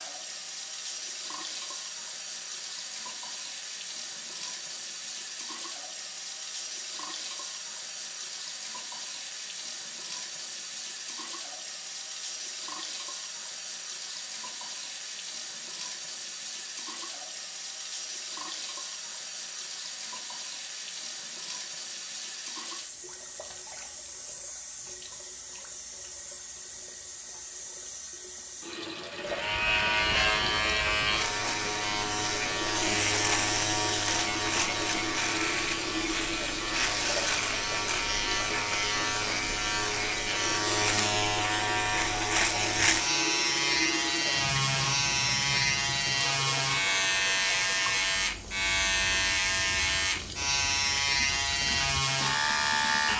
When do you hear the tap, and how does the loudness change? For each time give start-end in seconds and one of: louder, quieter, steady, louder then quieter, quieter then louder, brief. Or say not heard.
0.0-53.1 steady.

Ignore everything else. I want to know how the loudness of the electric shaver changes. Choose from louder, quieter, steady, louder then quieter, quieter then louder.
steady.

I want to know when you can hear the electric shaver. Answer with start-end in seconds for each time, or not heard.
29.2-53.1.